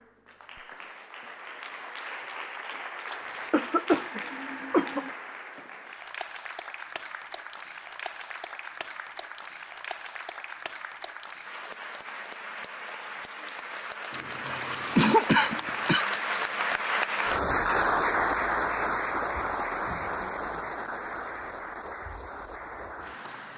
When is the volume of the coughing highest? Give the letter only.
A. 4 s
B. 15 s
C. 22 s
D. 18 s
B.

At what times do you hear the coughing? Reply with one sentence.
The coughing can be heard from 3.1 to 5.1 s and from 14.1 to 16.1 s.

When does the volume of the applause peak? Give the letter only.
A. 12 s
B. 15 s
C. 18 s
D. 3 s
C.